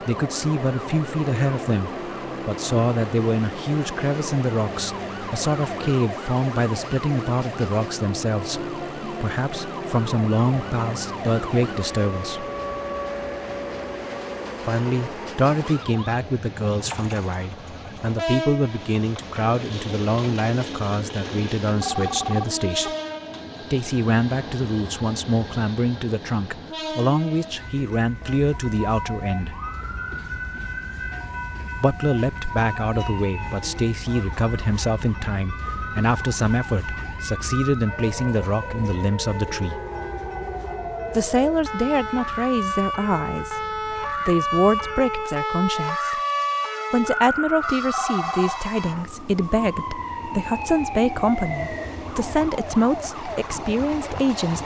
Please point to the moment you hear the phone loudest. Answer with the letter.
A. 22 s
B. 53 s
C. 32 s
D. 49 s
A.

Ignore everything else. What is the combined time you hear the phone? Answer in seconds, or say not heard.
2 s.